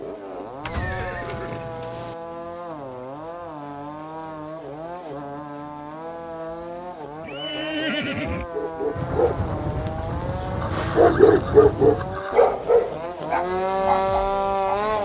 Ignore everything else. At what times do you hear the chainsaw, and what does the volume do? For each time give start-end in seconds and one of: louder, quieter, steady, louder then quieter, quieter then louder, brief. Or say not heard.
0.0-15.0 louder.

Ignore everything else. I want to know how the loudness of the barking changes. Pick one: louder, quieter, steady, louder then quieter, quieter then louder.
louder then quieter.